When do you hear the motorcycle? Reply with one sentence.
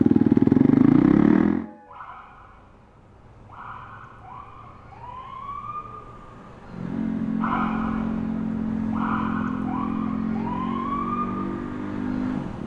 You can hear the motorcycle from 0.0 to 1.6 s and from 6.7 to 12.6 s.